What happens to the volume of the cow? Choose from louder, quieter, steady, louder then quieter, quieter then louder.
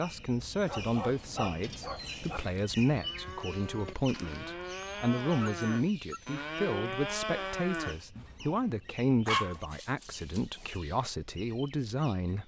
louder.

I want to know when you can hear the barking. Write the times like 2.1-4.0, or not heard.
0.7-2.4, 4.8-6.4, 9.2-10.8.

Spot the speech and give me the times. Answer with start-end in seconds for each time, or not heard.
0.0-12.4.